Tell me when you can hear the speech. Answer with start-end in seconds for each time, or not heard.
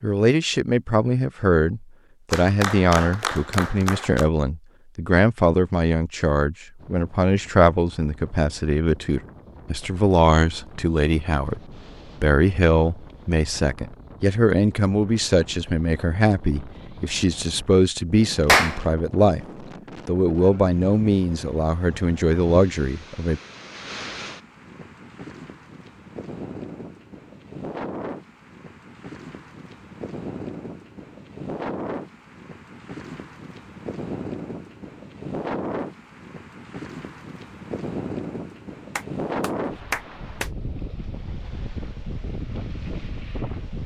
0.0-19.4, 20.1-23.4.